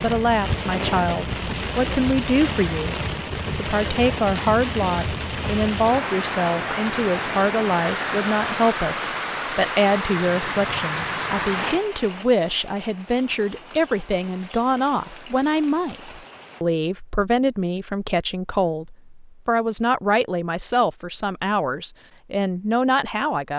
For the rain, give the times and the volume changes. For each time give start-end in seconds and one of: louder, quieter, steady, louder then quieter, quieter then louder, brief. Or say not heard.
0.0-16.6 quieter.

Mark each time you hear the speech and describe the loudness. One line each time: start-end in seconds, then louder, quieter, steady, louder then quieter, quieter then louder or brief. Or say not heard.
0.0-23.5 steady.